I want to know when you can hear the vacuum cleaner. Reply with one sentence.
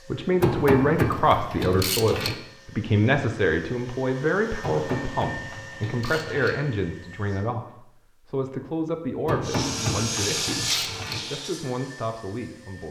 The vacuum cleaner can be heard from 0.0 to 7.5 s and from 9.4 to 12.8 s.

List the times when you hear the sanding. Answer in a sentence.
The sanding can't be heard in this clip.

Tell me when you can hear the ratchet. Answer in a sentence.
You can hear the ratchet from 0.4 to 2.4 s, from 4.6 to 6.6 s and from 9.2 to 11.2 s.